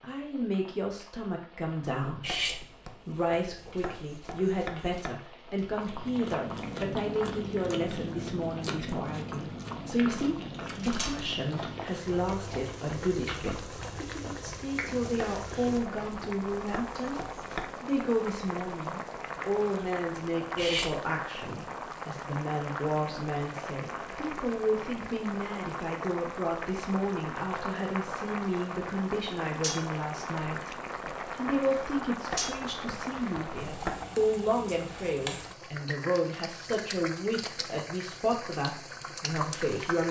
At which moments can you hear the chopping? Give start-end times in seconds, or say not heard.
2.2-5.2, 15.2-17.8, 32.3-34.1.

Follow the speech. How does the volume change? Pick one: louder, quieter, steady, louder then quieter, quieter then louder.
steady.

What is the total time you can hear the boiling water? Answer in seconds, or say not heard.
40 s.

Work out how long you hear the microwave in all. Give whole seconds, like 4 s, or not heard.
not heard.